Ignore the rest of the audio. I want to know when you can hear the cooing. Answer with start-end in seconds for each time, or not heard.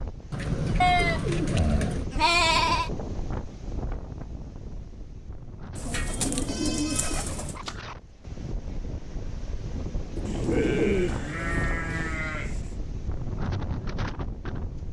0.3-2.0, 5.8-7.6, 10.2-12.1.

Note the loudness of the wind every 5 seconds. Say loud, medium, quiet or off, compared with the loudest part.
loud, medium, loud.